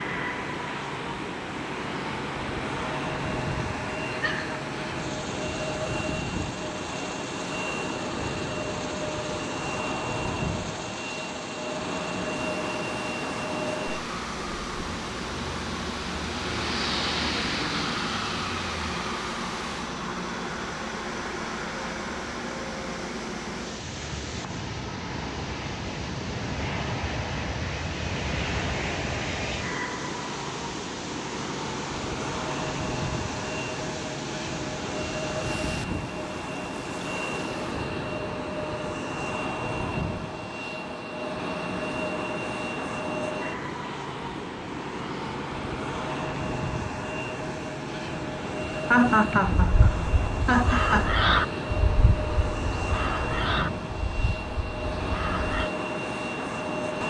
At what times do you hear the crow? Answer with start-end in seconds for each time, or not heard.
49.3-55.7.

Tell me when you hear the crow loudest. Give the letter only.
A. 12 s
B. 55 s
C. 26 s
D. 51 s
D.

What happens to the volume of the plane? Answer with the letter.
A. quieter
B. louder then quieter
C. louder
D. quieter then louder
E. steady
E.